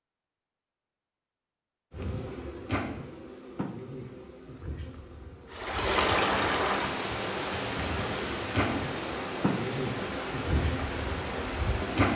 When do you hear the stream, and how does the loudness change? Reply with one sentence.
You can hear the stream from 5.5 to 12.1 s, getting quieter.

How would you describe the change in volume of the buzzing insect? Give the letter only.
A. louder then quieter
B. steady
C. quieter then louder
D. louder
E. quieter
C.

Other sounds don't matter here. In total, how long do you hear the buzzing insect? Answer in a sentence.
You can hear the buzzing insect for 10 seconds altogether.